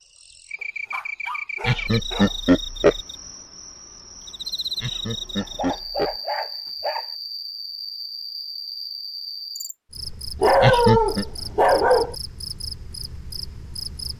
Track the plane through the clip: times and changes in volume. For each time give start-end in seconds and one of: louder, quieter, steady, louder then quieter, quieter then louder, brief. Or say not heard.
not heard.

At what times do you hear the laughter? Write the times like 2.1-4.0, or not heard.
1.6-3.0, 4.8-6.2, 10.6-11.2.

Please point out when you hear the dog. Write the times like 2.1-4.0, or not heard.
0.9-2.4, 5.4-7.1, 10.4-12.2.